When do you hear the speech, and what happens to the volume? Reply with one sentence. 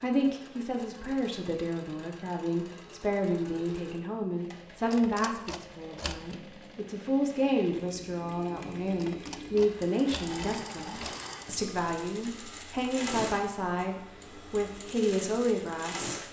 You can hear the speech from 0.0 to 16.2 s, at a steady volume.